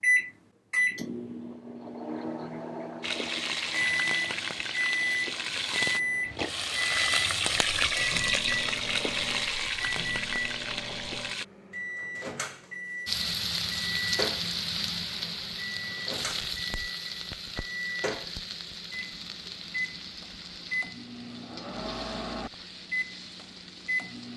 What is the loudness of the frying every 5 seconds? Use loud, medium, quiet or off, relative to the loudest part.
loud, loud, loud, medium, quiet.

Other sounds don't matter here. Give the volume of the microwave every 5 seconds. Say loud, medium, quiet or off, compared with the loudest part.
loud, loud, medium, medium, medium.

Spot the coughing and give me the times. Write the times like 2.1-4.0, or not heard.
not heard.